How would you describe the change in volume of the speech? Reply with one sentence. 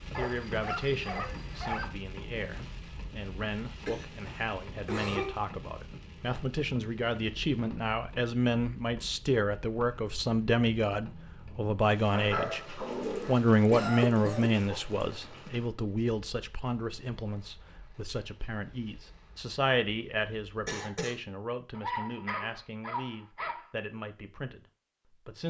The volume of the speech goes up, then down.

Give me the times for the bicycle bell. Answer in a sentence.
You can't hear the bicycle bell here.